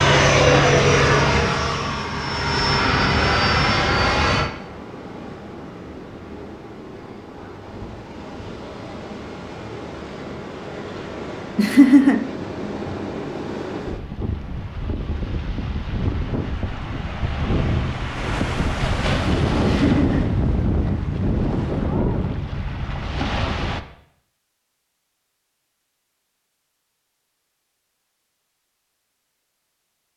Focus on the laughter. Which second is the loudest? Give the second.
12 s.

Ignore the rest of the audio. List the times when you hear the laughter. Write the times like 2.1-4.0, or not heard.
11.6-12.2, 19.6-20.2.